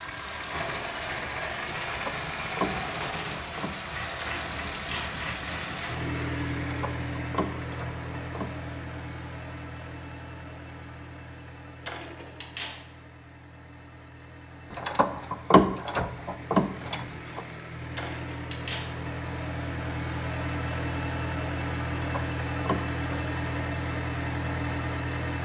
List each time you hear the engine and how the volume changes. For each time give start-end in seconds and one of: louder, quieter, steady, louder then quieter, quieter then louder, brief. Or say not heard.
0.0-25.4 quieter then louder.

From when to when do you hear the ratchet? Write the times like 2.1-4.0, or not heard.
1.9-3.8, 6.6-8.5, 14.7-17.4, 21.9-23.3.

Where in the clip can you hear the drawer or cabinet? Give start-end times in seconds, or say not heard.
4.2-5.2, 11.8-12.8, 17.9-18.9.